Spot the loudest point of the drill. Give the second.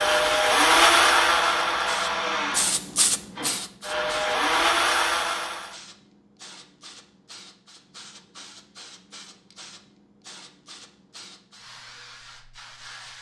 1 s.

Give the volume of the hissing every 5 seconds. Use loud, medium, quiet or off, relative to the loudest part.
loud, quiet, quiet.